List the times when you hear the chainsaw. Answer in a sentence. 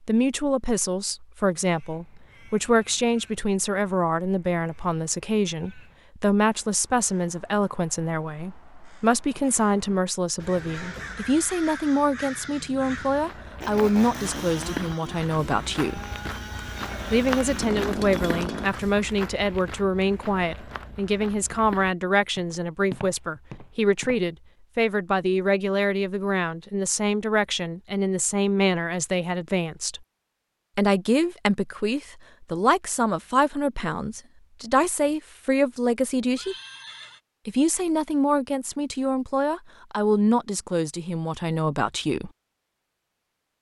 You can hear the chainsaw from 13.6 to 18.7 s.